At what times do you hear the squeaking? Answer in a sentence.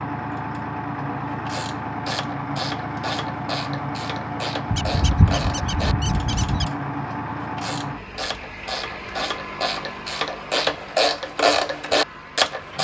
The squeaking can be heard from 4.7 to 6.7 s.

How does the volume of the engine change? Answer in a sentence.
The loudness of the engine goes down.